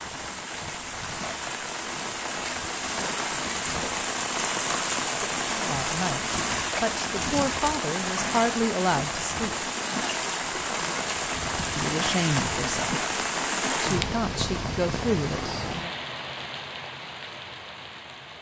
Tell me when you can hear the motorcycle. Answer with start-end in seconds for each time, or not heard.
not heard.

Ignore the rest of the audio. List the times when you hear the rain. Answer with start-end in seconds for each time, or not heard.
0.0-18.3.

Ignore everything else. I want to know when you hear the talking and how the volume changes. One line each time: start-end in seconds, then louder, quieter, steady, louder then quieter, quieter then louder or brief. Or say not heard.
5.4-9.6 louder
11.8-13.1 brief
13.8-15.9 brief.